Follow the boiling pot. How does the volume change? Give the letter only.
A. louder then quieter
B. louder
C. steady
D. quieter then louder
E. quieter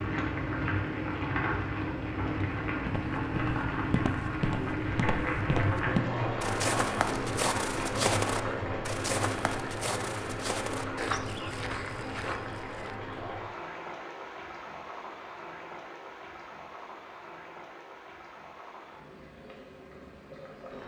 E.